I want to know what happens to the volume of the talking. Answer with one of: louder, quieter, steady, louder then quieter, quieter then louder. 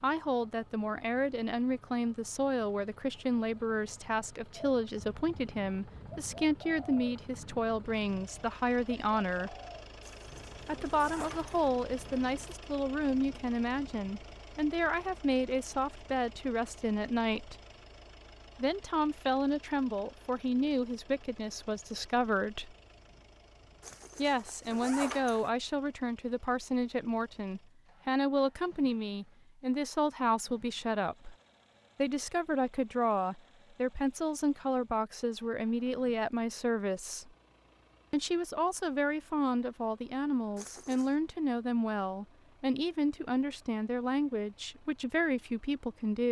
steady.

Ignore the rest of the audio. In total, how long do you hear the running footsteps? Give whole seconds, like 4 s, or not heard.
not heard.